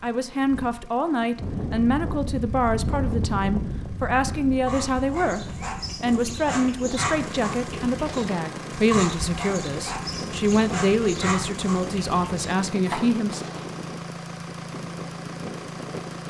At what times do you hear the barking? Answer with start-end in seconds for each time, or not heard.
4.7-13.1.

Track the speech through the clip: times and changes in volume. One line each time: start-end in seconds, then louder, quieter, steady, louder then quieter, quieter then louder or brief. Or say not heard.
0.0-13.4 steady.